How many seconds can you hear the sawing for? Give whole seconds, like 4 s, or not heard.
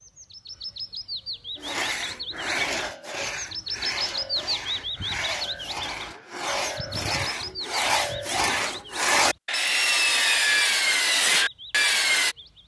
11 s.